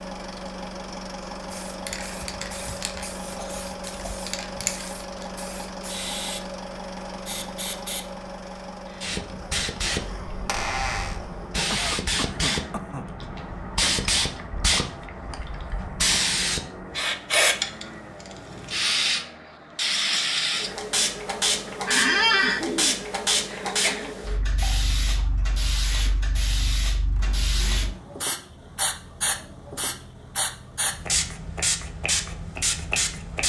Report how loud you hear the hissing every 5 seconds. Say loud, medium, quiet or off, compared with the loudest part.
medium, medium, loud, loud, loud, medium, loud.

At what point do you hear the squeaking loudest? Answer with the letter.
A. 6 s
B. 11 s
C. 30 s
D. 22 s
D.